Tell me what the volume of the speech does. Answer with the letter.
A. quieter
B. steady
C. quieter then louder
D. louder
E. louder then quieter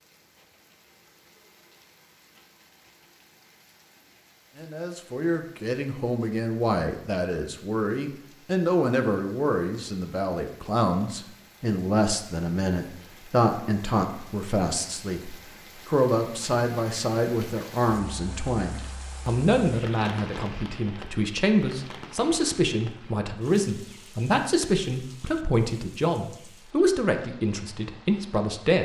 B.